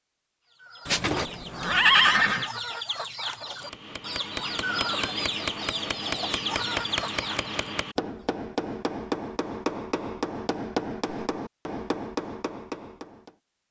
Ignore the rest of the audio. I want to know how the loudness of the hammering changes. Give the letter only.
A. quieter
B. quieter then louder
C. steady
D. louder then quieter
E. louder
C.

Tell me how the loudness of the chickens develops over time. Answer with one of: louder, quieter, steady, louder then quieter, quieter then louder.
louder.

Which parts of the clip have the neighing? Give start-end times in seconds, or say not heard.
0.8-2.5.